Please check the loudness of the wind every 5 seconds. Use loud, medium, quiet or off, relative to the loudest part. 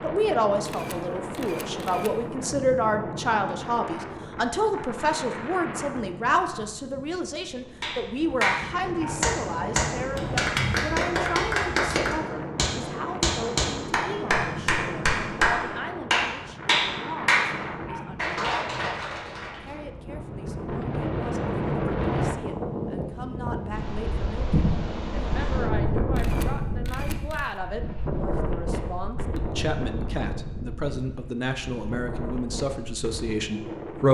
medium, medium, medium, medium, loud, loud, medium.